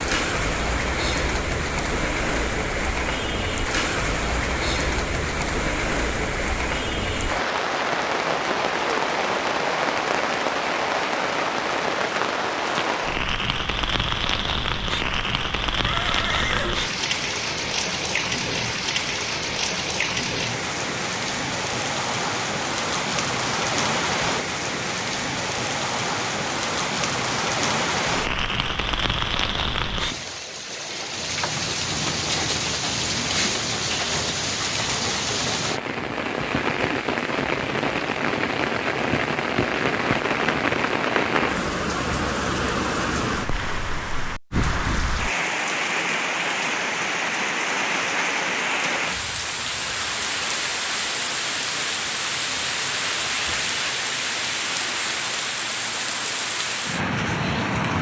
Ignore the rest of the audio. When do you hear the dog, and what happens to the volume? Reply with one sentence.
You can't hear the dog here.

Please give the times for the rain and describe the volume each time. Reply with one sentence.
The rain can be heard from 0.0 to 57.9 s, at a steady volume.